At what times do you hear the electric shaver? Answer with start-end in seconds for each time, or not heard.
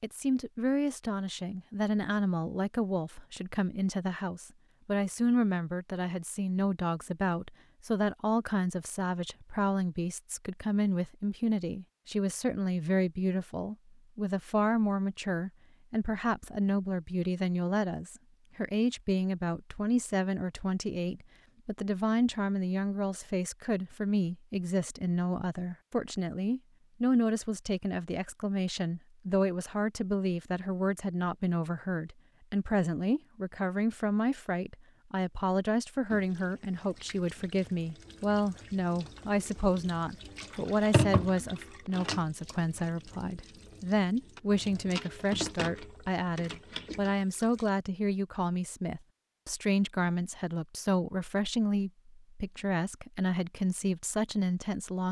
not heard.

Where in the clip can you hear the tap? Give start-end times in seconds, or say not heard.
36.1-47.7.